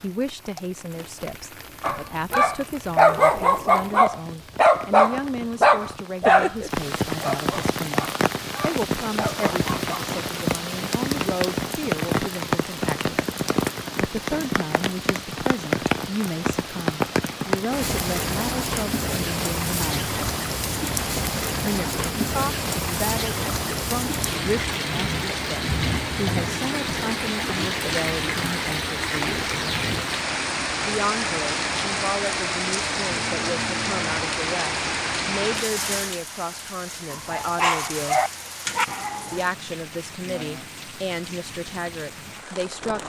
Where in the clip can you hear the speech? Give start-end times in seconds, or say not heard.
0.0-13.2, 14.1-20.1, 21.6-29.5, 30.8-38.2, 39.2-43.0.